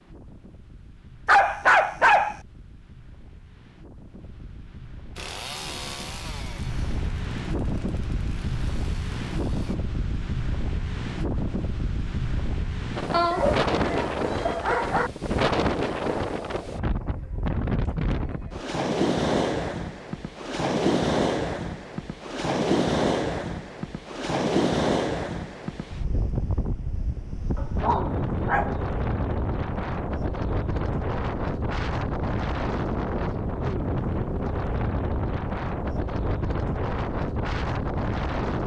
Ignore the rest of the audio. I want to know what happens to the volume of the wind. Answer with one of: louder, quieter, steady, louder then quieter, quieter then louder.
louder.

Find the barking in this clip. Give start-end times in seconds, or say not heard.
1.2-2.4, 13.1-15.1, 27.6-28.8.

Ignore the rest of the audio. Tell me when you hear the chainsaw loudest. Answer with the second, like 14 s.
6 s.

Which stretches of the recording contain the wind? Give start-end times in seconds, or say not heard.
0.0-38.6.